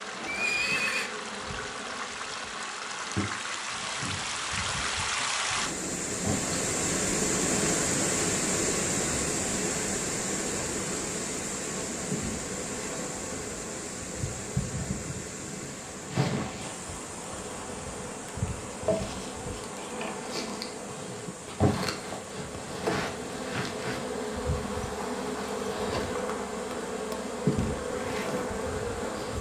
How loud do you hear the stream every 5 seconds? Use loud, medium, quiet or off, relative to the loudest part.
medium, loud, medium, quiet, quiet, quiet.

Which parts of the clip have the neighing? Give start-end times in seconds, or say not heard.
0.2-1.1.